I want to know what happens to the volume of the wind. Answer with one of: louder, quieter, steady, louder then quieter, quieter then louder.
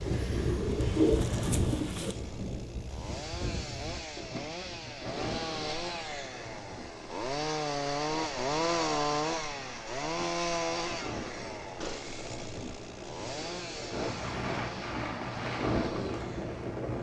quieter then louder.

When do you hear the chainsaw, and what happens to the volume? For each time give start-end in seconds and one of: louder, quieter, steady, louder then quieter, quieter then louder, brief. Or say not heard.
0.0-16.9 louder then quieter.